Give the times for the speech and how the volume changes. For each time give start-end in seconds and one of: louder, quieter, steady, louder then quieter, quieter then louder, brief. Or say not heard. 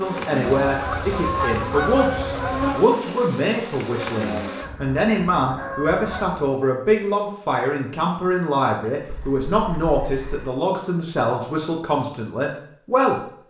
0.0-13.2 steady.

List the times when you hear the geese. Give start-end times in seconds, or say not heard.
0.5-2.9, 4.6-6.5, 9.1-10.6.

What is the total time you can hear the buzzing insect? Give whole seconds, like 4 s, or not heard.
5 s.